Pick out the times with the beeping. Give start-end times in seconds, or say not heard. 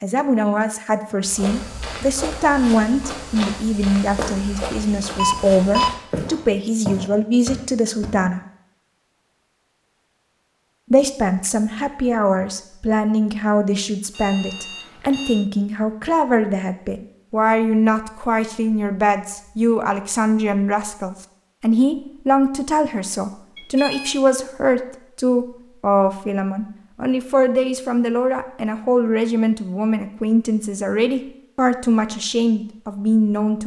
5.2-6.0, 14.2-15.4, 23.6-24.2.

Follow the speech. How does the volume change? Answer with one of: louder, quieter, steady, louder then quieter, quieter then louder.
steady.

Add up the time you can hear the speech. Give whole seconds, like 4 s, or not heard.
31 s.